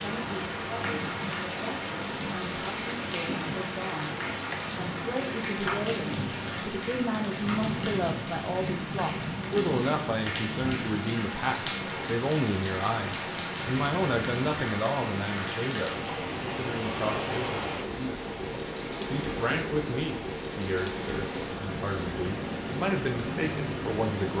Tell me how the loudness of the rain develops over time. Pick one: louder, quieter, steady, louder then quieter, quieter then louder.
steady.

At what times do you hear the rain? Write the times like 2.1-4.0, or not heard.
0.0-24.3.